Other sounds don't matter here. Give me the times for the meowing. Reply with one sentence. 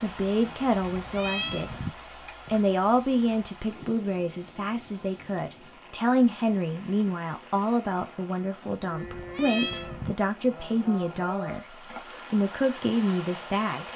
You can hear the meowing from 0.4 to 1.9 s and from 8.6 to 10.2 s.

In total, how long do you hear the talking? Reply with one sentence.
You can hear the talking for 13 seconds altogether.